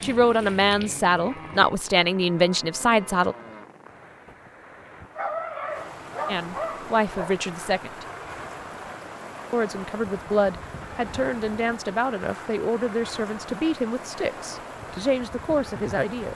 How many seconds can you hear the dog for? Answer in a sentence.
The dog can be heard for 2 seconds in total.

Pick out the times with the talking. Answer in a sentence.
The talking can be heard from 0.0 to 3.4 s, from 6.2 to 8.1 s and from 9.5 to 16.3 s.